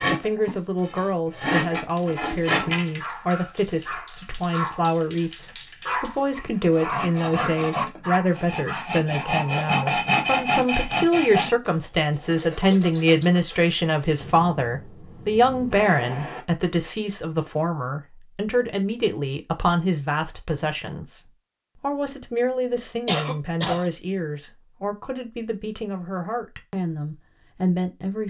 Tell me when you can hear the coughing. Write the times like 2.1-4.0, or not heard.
23.1-23.9.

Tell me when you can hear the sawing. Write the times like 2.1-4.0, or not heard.
0.0-3.0, 6.7-13.8.